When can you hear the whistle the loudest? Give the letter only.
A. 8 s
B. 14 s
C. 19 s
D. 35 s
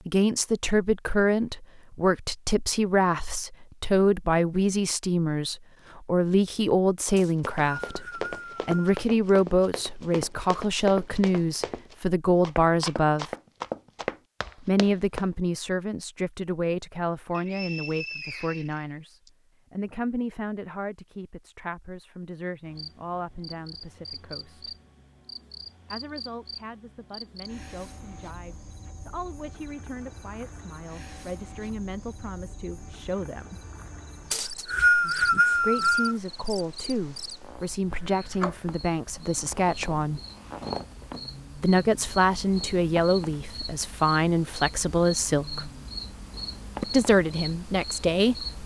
D.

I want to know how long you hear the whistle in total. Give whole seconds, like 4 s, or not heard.
6 s.